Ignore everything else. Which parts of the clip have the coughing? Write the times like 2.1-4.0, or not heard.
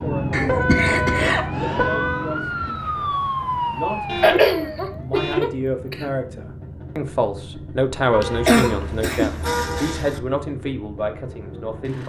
0.3-1.9, 4.2-6.0, 8.2-10.2.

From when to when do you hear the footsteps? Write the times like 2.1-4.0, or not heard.
not heard.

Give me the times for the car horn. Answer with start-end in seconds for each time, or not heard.
0.5-2.3, 4.0-5.6, 8.1-10.2.